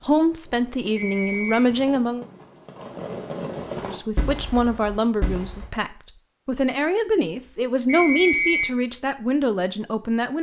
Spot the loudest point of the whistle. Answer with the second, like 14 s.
8 s.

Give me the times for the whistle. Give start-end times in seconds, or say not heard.
0.9-1.6, 7.8-8.7.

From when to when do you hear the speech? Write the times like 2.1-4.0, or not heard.
0.0-2.2, 3.8-10.3.